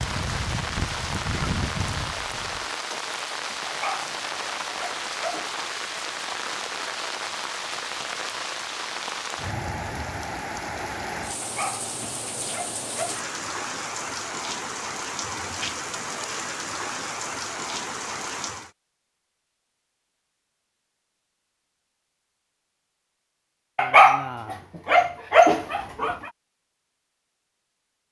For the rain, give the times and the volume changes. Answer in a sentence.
The rain can be heard from 0.0 to 18.7 s, at a steady volume.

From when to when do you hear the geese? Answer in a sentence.
The geese can be heard from 0.0 to 2.6 s.